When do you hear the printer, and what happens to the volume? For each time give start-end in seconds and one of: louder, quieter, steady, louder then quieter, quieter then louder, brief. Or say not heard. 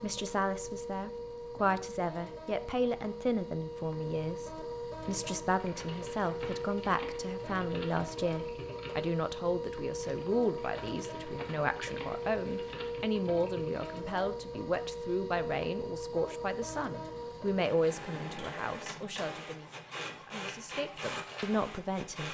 0.0-22.3 steady.